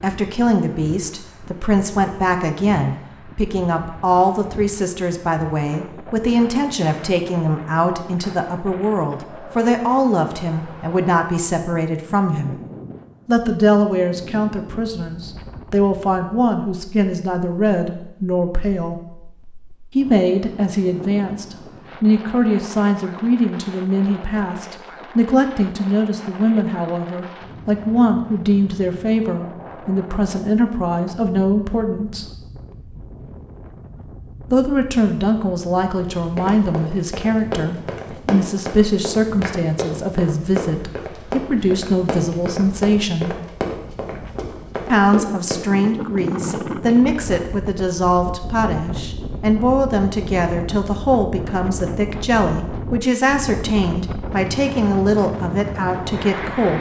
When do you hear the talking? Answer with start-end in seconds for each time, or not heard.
0.0-12.6, 13.2-18.9, 19.9-32.2, 34.5-43.4, 44.9-56.7.